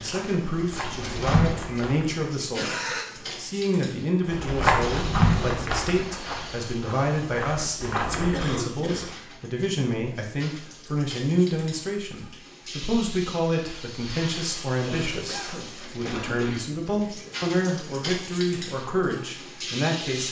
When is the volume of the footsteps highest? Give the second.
5 s.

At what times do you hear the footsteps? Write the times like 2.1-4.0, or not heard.
0.0-2.3, 4.2-8.5.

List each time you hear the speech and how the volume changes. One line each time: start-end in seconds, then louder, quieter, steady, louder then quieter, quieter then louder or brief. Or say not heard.
0.0-20.2 steady.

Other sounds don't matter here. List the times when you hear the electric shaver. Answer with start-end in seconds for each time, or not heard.
not heard.